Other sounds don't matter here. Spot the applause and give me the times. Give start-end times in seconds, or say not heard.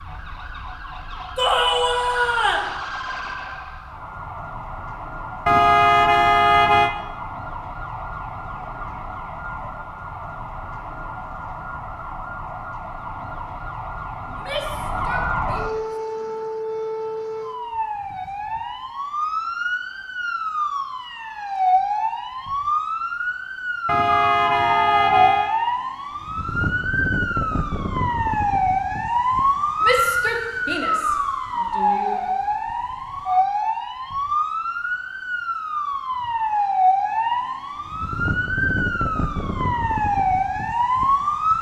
not heard.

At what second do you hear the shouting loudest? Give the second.
2 s.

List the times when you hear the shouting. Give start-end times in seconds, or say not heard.
1.4-2.7, 14.2-16.3, 29.8-32.2.